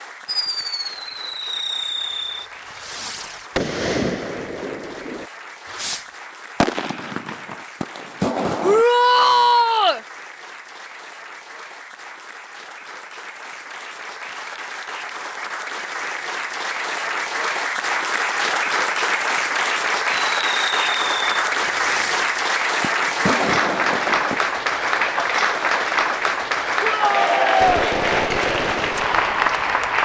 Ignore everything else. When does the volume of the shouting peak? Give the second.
9 s.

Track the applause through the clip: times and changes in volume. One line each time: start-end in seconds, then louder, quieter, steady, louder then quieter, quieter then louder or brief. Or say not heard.
0.0-29.9 louder.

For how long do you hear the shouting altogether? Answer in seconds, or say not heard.
2 s.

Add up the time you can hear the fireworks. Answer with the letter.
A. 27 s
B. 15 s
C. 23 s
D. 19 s
B.